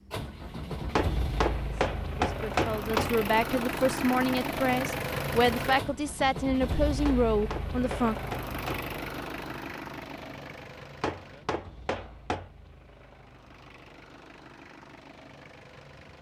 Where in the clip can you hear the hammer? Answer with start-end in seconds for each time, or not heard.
0.9-3.1, 7.0-8.9, 11.0-12.5.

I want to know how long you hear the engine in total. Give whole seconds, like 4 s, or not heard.
16 s.